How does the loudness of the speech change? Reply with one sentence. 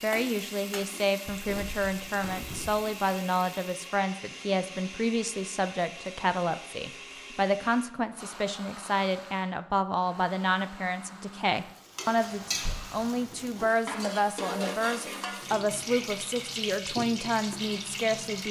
The volume of the speech stays about the same.